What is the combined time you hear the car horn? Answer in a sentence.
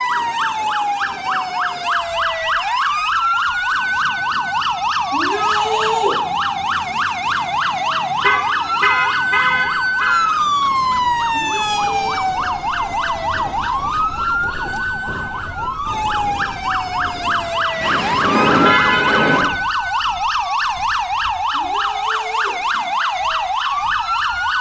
You can hear the car horn for 4 seconds altogether.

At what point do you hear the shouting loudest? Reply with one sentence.
The loudest moment of the shouting is at 6 seconds.